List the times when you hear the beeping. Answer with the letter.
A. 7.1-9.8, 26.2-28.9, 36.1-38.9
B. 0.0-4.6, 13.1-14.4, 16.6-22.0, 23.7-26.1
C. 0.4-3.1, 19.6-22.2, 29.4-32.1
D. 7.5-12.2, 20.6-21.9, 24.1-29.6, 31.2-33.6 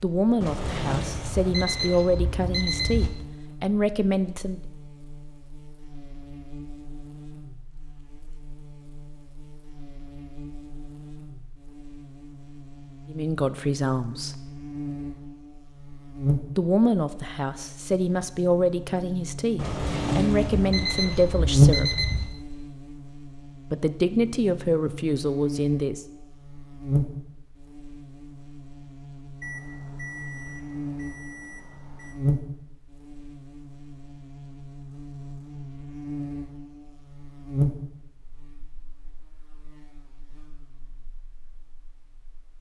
C.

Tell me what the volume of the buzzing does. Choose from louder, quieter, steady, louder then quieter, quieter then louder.
louder then quieter.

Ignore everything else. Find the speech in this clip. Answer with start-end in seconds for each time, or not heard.
0.0-4.6, 13.1-14.4, 16.6-22.0, 23.7-26.1.